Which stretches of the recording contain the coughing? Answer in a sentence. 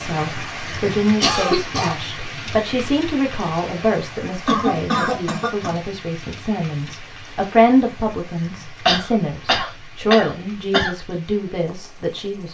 The coughing can be heard from 1.2 to 1.9 s, from 4.5 to 5.8 s and from 8.8 to 10.9 s.